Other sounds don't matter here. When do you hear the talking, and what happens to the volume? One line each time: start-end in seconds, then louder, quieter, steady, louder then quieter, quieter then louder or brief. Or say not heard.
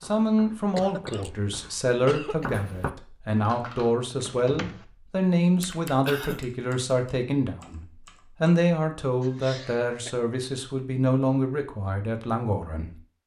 0.0-13.0 steady.